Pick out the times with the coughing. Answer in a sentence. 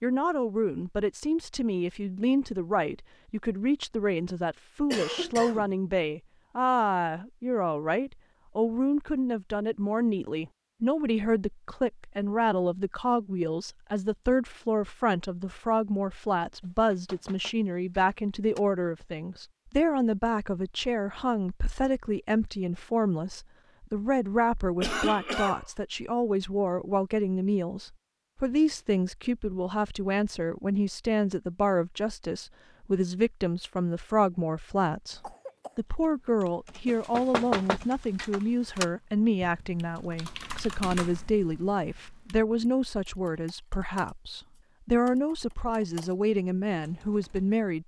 You can hear the coughing from 4.9 to 5.8 s, from 24.8 to 25.6 s and from 35.1 to 35.8 s.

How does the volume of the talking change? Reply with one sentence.
The loudness of the talking stays about the same.